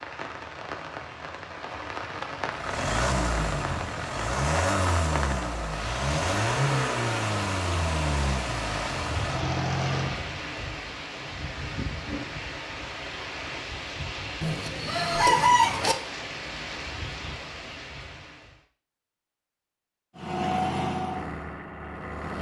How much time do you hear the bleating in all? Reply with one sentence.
The bleating can't be heard in this clip.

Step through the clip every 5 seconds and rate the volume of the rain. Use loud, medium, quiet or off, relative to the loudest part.
loud, loud, loud, loud, off.